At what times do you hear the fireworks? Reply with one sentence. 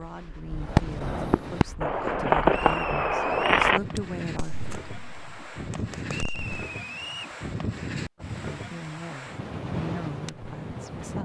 The fireworks can be heard from 0.5 to 6.7 s.